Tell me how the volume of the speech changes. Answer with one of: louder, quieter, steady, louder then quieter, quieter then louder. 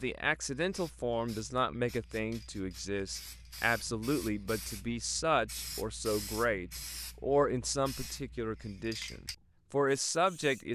steady.